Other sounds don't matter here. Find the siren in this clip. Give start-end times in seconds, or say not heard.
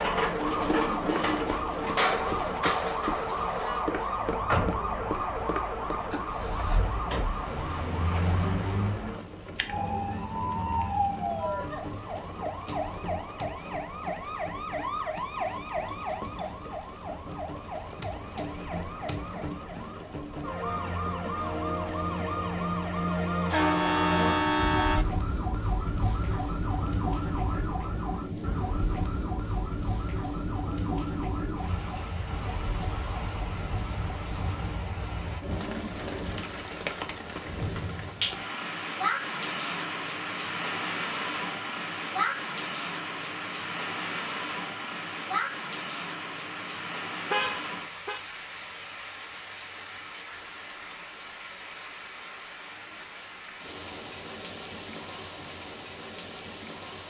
0.0-34.7.